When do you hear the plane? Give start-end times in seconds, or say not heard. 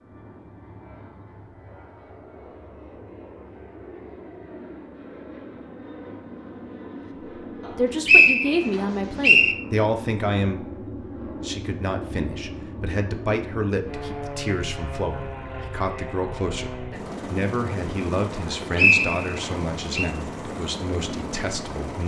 0.0-22.0.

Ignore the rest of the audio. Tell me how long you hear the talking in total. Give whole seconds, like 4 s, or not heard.
14 s.